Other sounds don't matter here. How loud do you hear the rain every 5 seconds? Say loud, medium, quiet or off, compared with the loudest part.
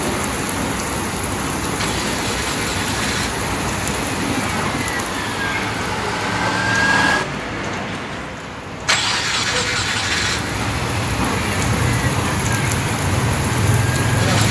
loud, medium, loud.